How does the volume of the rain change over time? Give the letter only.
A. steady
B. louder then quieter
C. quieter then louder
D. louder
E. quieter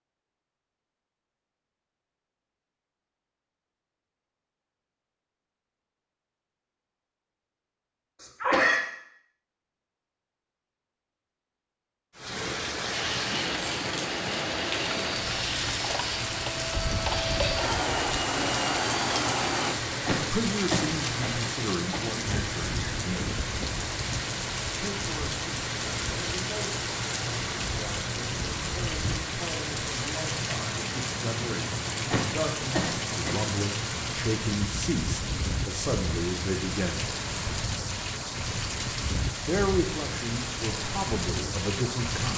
A.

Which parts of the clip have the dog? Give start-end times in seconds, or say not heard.
not heard.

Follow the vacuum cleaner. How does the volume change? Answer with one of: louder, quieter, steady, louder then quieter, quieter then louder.
louder.